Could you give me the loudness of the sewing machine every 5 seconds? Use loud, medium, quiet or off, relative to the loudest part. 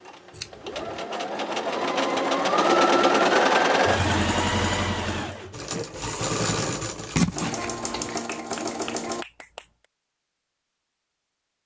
loud, medium, off.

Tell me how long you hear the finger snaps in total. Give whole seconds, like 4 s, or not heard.
2 s.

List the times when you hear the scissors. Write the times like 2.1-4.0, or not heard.
0.3-0.9, 7.2-8.2.